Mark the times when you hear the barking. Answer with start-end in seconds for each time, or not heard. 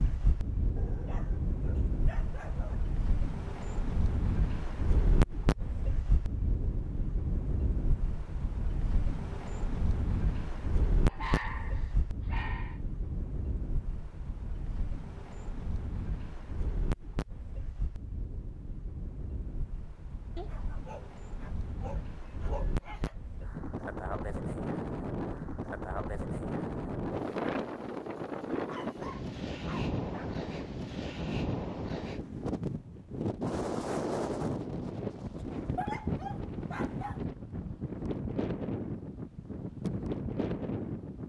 0.8-2.8, 11.1-12.8, 20.4-23.1, 28.6-30.4, 35.8-37.2.